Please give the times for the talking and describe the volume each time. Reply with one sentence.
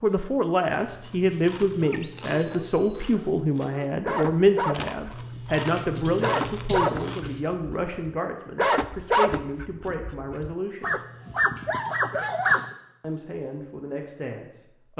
The talking can be heard from 0.0 to 10.9 s, getting quieter; and briefly from 13.0 to 14.9 s.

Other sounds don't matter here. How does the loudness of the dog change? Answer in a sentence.
The volume of the dog goes up.